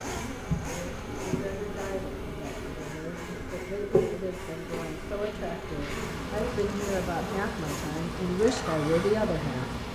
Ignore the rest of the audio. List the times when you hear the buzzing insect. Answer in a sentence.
The buzzing insect can be heard from 0.0 to 9.9 s.